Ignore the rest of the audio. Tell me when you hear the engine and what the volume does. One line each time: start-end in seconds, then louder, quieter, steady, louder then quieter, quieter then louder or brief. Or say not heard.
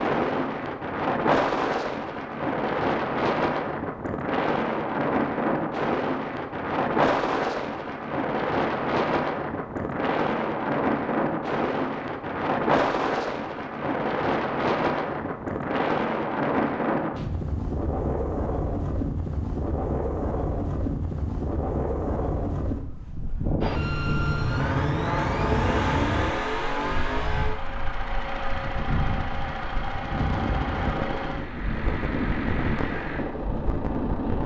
23.6-34.4 quieter.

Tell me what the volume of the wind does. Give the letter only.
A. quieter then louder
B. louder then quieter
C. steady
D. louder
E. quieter
E.